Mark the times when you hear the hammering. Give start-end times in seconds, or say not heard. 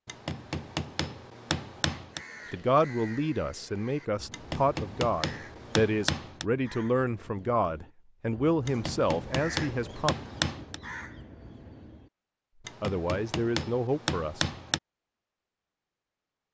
0.1-2.2, 4.3-6.5, 8.7-10.8, 12.7-14.8.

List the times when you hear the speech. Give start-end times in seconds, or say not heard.
2.5-10.2, 12.8-14.5.